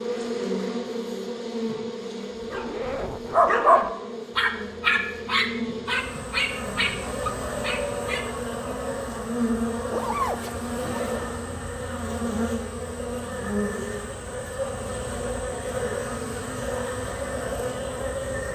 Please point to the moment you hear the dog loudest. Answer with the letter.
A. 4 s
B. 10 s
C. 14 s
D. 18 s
A.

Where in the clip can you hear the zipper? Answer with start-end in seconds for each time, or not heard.
2.6-4.0, 9.9-11.2.